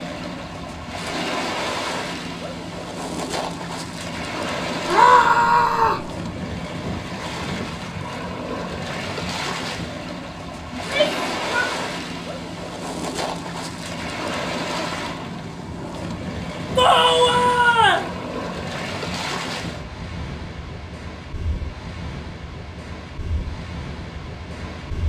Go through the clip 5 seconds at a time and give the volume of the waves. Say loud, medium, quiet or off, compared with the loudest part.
loud, loud, loud, loud, medium.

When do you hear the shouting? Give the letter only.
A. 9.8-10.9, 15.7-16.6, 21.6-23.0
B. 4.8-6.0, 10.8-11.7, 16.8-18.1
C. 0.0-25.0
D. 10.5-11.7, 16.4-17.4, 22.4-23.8
B.